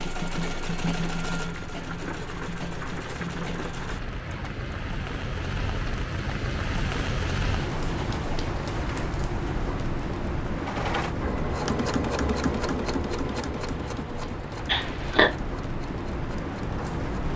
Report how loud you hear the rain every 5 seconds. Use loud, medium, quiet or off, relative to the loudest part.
medium, loud, loud, loud.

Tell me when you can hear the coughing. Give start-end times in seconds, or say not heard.
14.7-15.3.